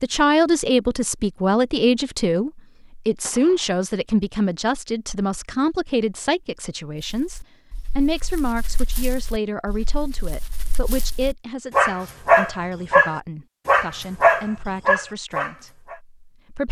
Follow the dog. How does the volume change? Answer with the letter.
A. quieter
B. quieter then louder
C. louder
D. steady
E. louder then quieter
C.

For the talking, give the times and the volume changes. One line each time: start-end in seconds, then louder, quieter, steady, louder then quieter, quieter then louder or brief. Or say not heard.
0.0-16.6 quieter.